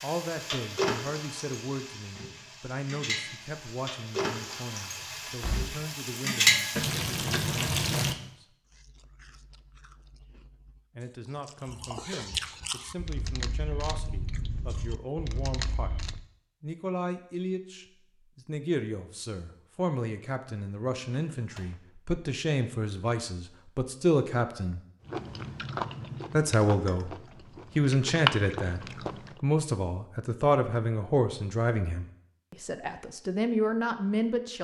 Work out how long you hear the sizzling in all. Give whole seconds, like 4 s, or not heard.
8 s.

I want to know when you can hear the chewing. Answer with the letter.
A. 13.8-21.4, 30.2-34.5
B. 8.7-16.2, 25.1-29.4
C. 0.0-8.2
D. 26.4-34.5
B.